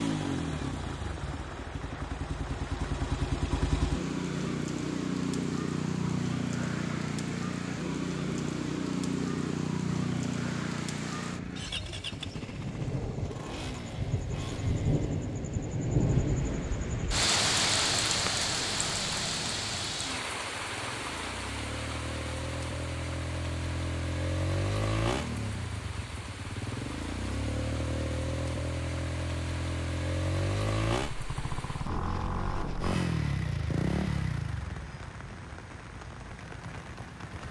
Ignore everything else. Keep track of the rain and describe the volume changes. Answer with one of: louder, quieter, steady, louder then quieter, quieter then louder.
louder then quieter.